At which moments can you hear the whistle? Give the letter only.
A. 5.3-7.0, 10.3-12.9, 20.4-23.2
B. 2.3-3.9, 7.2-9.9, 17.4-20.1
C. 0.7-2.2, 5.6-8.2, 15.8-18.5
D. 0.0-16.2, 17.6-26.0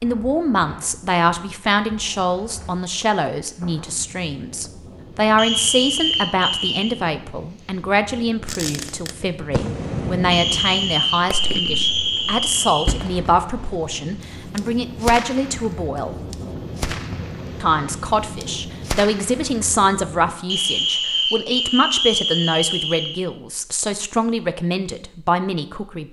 A.